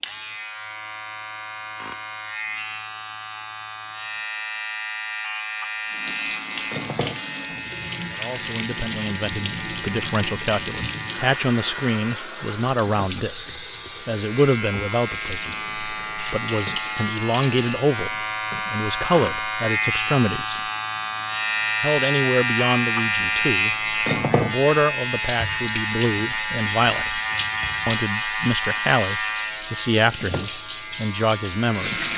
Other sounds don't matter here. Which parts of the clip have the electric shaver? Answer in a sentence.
The electric shaver can be heard from 0.0 to 32.1 s.